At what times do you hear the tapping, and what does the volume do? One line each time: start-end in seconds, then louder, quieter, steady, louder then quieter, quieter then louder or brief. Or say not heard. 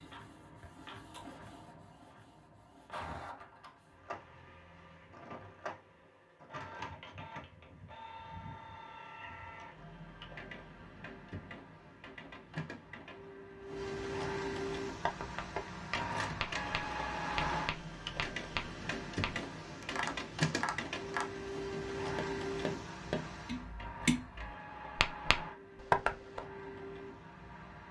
14.7-26.4 louder.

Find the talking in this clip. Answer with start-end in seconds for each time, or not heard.
not heard.